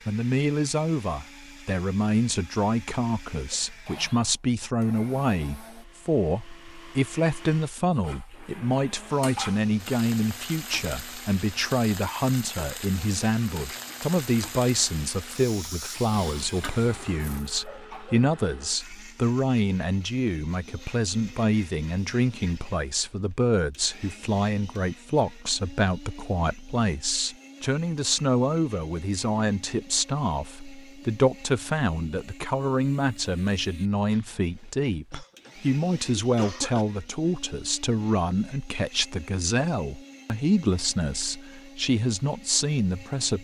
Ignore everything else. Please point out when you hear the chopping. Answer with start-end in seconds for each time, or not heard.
not heard.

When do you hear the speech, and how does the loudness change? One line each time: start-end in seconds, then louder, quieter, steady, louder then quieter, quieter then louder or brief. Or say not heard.
0.1-43.3 steady.